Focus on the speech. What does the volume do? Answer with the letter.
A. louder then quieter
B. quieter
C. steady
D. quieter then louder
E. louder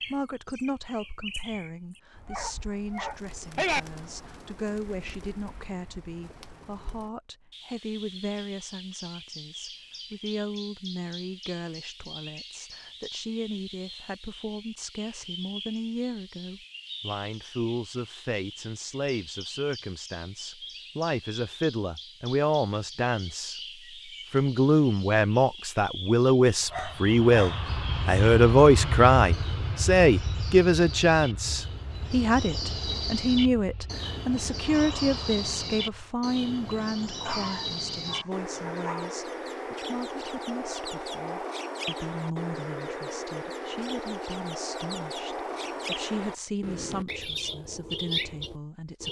A.